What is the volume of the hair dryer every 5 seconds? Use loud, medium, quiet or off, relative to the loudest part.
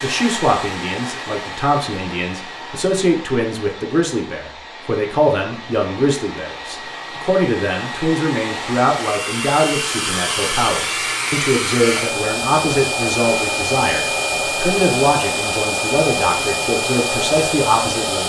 medium, medium, loud, loud.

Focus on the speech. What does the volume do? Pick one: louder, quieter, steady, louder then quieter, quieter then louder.
steady.